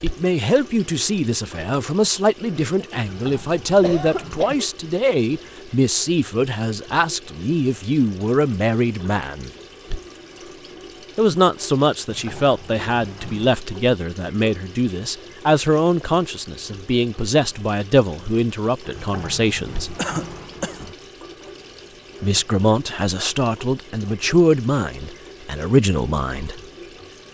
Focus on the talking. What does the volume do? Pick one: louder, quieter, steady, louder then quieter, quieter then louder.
steady.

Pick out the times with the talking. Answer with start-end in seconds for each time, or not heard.
0.0-9.5, 11.2-19.9, 22.2-26.6.